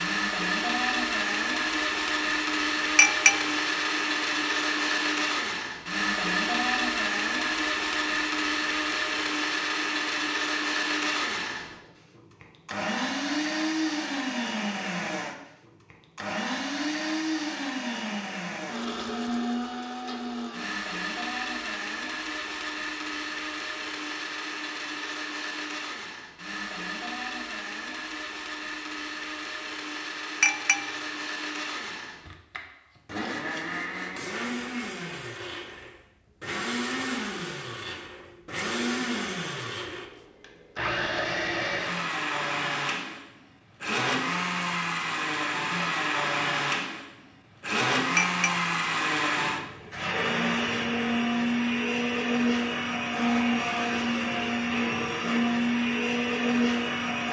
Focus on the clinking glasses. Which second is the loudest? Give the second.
3 s.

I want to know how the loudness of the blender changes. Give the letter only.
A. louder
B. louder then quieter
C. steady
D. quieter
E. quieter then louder
E.